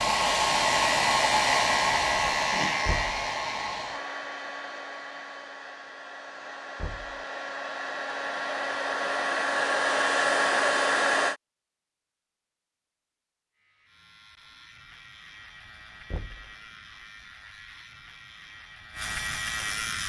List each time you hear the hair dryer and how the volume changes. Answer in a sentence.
The hair dryer can be heard from 0.0 to 11.3 s, getting quieter then louder.